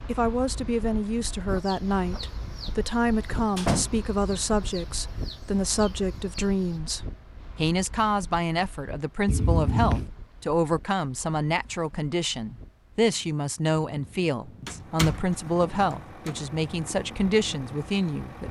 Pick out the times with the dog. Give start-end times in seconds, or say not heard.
not heard.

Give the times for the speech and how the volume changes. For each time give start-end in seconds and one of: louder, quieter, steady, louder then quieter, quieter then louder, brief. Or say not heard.
0.1-18.4 steady.